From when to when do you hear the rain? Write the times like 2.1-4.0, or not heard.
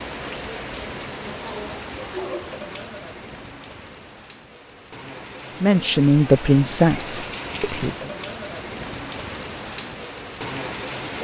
0.0-11.1.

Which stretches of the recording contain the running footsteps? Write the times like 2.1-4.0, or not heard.
not heard.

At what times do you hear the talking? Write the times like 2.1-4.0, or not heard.
5.6-8.1.